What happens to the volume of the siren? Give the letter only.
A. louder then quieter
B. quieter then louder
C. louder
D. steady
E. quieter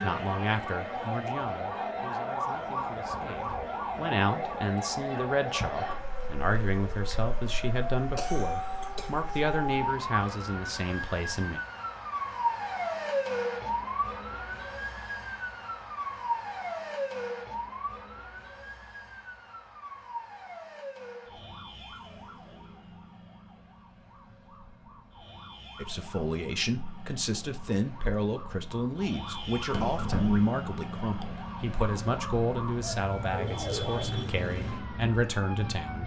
B.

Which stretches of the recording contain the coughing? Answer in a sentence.
You can hear the coughing from 8.2 to 9.4 s.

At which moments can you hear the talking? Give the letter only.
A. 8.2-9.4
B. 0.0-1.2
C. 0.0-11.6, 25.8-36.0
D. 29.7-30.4
C.